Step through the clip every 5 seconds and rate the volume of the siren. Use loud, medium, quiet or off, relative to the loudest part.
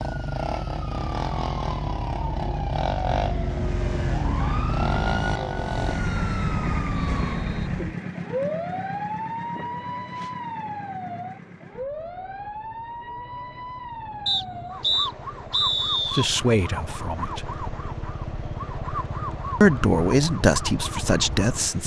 loud, loud, medium, medium, medium.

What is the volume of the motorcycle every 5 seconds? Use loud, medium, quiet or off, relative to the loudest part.
loud, loud, quiet, medium, medium.